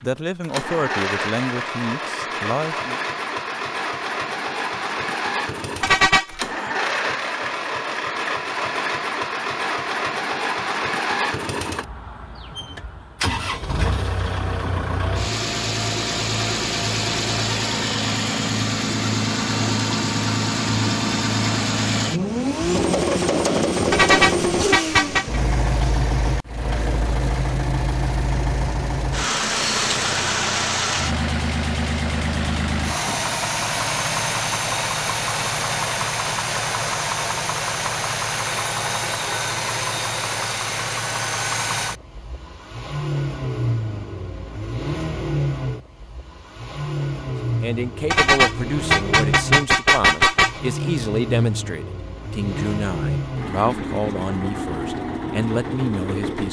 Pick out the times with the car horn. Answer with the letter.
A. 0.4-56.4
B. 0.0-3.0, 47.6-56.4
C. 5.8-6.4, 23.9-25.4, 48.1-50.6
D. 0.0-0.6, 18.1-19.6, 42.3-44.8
C.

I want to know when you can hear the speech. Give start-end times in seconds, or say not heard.
0.0-3.0, 47.6-56.4.